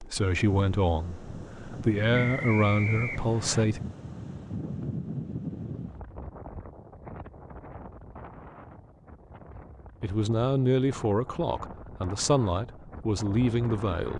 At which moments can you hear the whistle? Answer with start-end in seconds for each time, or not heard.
2.1-3.6.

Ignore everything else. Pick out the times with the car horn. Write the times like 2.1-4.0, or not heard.
not heard.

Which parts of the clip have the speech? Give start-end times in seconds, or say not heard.
0.0-3.8, 10.0-14.1.